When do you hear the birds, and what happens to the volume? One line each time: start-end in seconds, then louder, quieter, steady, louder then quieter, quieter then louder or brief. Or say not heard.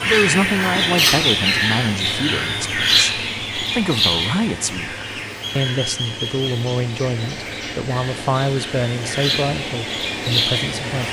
0.0-11.0 quieter then louder.